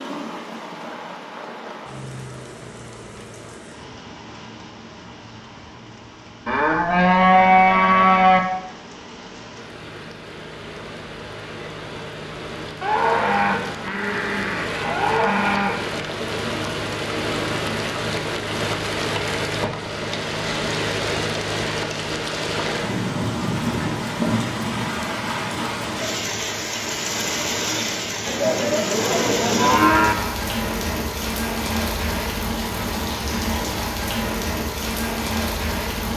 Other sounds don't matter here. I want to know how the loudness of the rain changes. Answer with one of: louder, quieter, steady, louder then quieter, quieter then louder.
louder.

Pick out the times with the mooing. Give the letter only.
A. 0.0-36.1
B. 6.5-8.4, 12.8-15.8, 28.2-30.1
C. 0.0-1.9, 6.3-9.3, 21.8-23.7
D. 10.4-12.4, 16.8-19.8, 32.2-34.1
B.